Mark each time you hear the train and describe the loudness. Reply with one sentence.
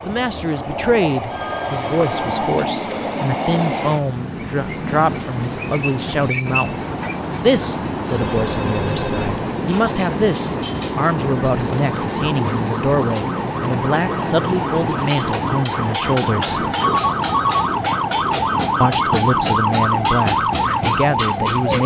You can hear the train from 0.0 to 21.8 s, at a steady volume.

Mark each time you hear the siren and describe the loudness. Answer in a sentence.
The siren can be heard from 11.5 to 21.8 s, getting louder.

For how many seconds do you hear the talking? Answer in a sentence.
You can hear the talking for 19 seconds altogether.